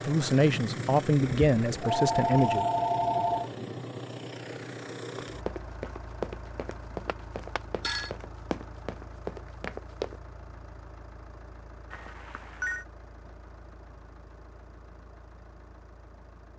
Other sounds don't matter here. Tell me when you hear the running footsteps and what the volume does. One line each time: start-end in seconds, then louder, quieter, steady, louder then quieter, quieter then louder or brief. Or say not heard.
5.2-10.2 quieter then louder.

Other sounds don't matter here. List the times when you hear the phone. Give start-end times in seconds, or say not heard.
1.1-3.5, 7.0-8.1, 11.9-12.8.